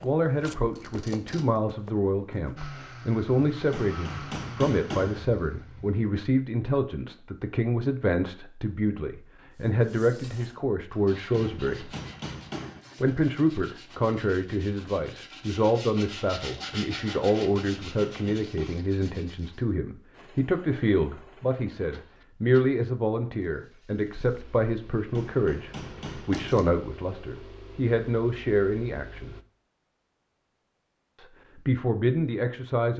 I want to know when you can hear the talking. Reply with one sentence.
You can hear the talking from 0.0 to 11.9 s, from 13.0 to 29.4 s and from 31.1 to 32.9 s.